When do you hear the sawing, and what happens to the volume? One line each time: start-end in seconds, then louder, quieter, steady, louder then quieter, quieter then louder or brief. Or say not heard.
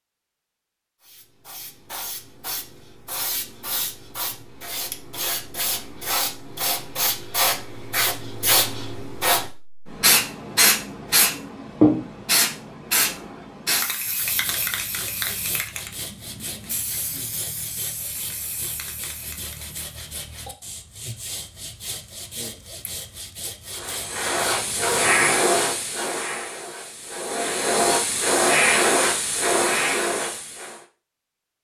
14.2-24.9 steady.